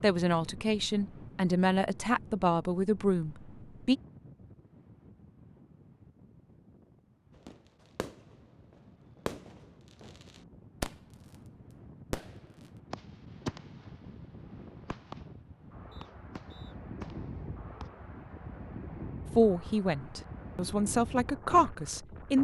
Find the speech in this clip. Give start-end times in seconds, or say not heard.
0.0-4.0, 19.4-22.3.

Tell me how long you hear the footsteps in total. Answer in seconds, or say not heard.
not heard.